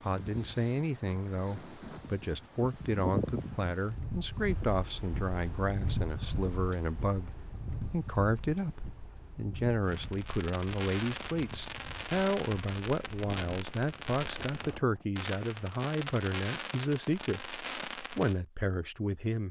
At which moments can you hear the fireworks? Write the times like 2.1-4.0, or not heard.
9.8-18.4.